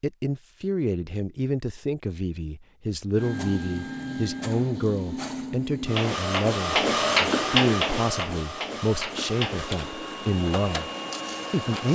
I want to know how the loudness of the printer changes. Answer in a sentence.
The volume of the printer goes up, then down.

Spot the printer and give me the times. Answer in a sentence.
You can hear the printer from 3.1 to 11.9 s.